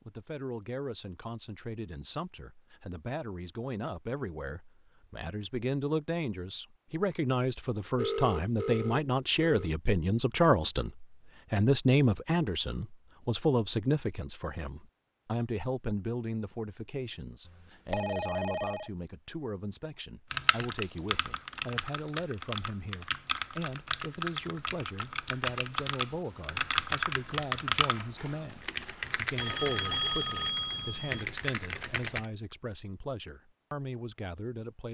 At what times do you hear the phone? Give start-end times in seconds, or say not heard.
8.0-9.7, 17.9-18.9, 29.4-31.3.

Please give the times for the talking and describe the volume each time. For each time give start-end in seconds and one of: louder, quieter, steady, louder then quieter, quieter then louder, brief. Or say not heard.
0.1-34.8 louder then quieter.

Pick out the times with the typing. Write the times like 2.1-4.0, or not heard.
20.3-32.2.